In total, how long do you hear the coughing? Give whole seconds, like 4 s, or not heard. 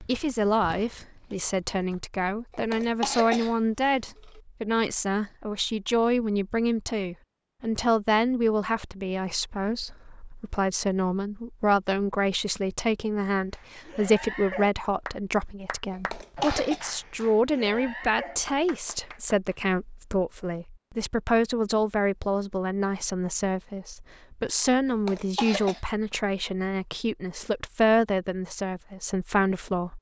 4 s.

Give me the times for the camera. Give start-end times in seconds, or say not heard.
not heard.